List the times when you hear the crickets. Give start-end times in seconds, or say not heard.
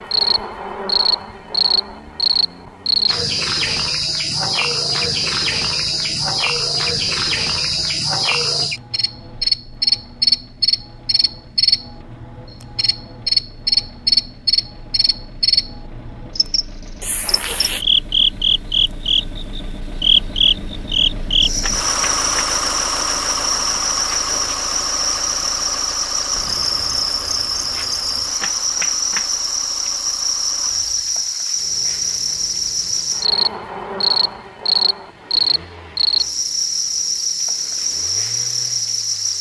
0.0-39.3.